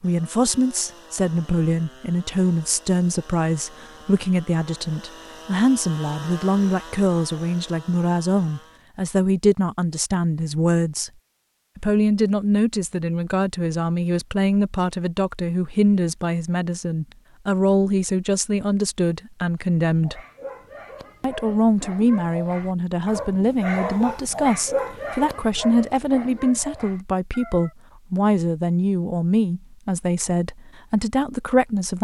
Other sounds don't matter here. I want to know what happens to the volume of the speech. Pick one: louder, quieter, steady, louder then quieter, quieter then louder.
steady.